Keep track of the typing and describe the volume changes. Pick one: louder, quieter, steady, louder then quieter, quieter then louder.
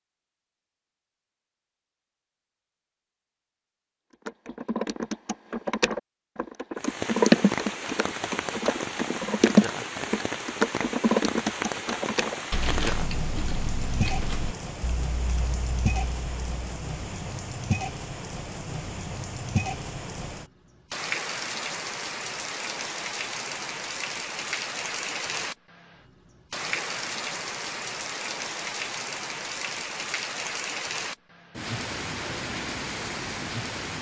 louder then quieter.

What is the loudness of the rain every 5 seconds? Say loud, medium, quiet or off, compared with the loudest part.
off, loud, loud, loud, loud, loud, loud.